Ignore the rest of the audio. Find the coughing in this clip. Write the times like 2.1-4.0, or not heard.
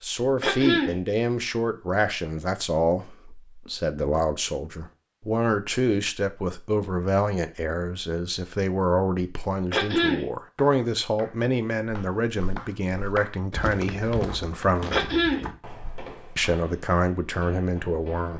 0.4-0.9, 9.7-10.2, 14.9-15.4.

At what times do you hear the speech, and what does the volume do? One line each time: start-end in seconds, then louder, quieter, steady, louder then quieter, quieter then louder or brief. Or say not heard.
0.0-15.2 steady
16.4-18.3 brief.